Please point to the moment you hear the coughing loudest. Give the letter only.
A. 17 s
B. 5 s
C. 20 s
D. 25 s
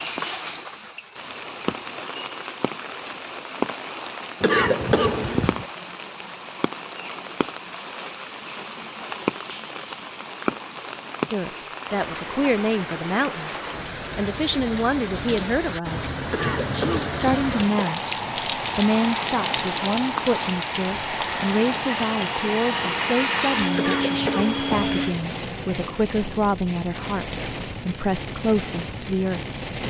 B.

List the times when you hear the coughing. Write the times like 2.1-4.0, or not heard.
4.4-5.7, 16.3-17.9, 23.8-24.9.